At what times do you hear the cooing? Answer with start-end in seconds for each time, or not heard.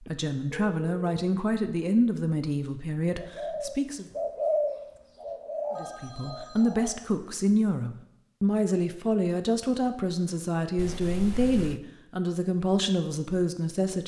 3.1-7.0.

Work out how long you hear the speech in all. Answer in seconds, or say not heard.
12 s.